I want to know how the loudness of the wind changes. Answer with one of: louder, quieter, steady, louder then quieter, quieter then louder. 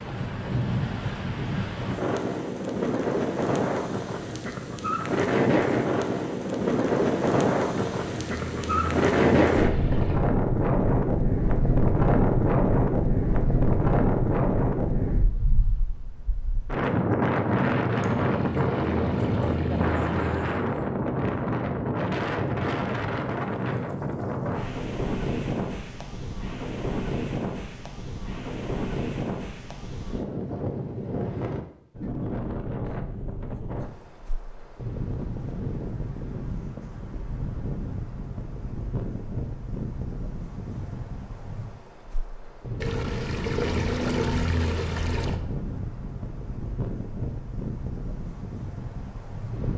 quieter.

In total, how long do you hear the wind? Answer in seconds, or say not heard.
50 s.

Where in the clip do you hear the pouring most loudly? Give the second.
44 s.